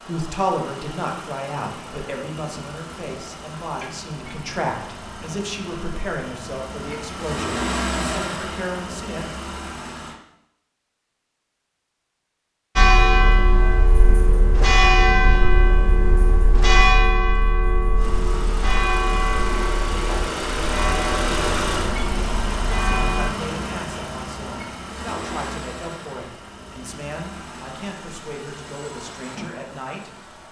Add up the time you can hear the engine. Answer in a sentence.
You can hear the engine for 23 seconds altogether.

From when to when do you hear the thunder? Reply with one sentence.
You can't hear the thunder here.